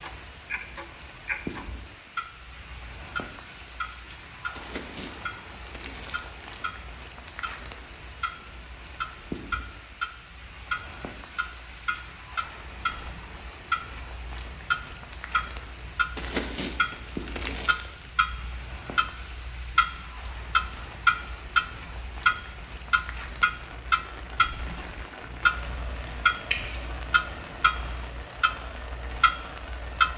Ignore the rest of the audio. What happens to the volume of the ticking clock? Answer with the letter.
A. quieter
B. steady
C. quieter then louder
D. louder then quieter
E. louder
E.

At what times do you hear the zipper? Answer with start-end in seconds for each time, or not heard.
not heard.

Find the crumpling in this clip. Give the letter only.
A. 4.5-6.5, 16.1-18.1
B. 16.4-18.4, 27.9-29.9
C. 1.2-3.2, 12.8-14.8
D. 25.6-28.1
A.